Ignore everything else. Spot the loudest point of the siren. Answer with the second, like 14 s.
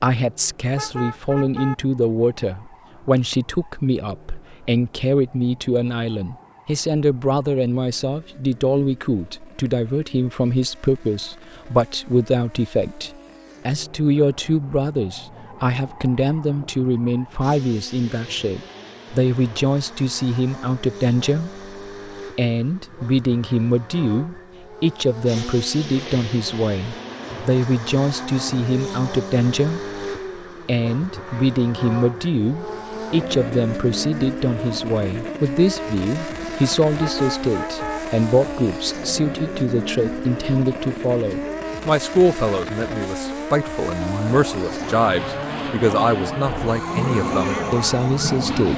47 s.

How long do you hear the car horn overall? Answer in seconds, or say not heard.
2 s.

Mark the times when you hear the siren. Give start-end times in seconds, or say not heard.
44.0-48.7.